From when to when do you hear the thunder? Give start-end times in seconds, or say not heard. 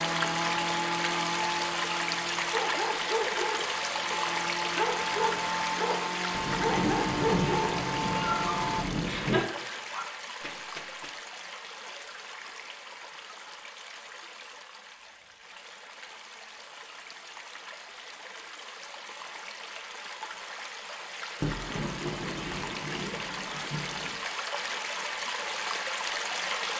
6.3-9.4, 21.4-24.1.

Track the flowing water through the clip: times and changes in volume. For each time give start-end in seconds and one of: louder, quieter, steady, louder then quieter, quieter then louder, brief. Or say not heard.
0.0-26.7 quieter then louder.